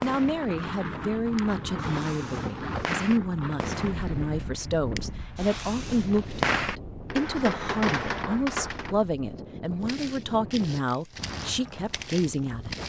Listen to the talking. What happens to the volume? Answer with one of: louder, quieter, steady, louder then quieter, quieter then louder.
steady.